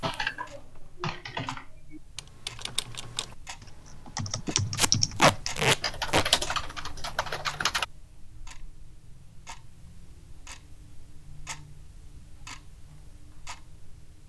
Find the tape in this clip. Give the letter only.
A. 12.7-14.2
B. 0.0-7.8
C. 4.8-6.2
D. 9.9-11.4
C.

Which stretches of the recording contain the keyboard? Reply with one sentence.
You can hear the keyboard from 0.0 to 7.8 s.